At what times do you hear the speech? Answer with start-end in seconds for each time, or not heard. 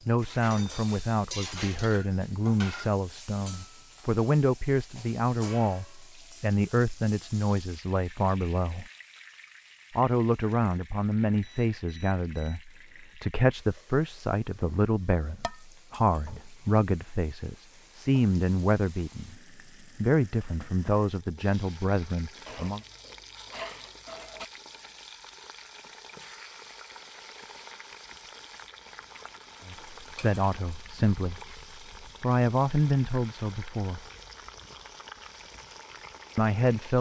0.1-8.8, 9.9-19.4, 19.9-22.8, 29.6-31.6, 32.2-34.0, 36.4-36.9.